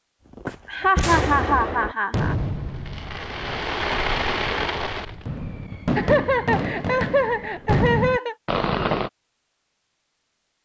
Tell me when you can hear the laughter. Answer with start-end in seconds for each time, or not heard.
0.5-2.4, 6.0-8.3.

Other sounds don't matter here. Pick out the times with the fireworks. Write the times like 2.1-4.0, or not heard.
0.3-9.1.